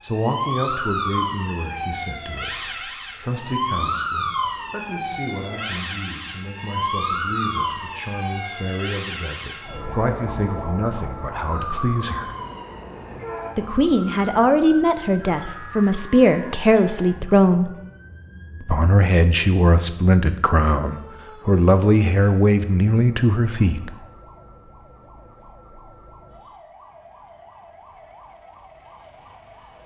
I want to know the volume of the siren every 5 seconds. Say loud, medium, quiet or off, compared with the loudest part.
loud, loud, medium, quiet, quiet, quiet.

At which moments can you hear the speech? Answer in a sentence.
The speech can be heard from 0.0 to 12.3 s, from 13.6 to 17.7 s and from 18.6 to 23.9 s.